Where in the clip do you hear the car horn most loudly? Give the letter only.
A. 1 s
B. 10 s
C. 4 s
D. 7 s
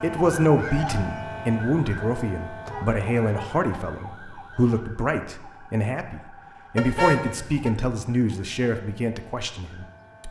D.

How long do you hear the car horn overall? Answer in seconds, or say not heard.
2 s.